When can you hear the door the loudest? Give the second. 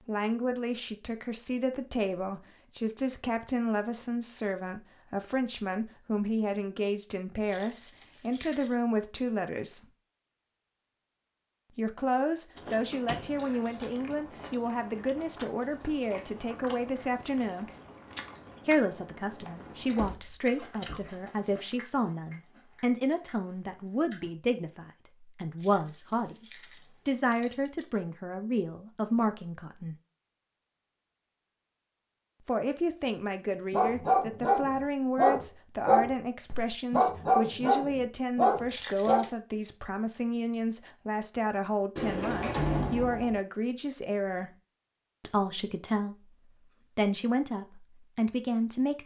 43 s.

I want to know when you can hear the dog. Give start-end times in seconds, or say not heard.
33.7-39.2.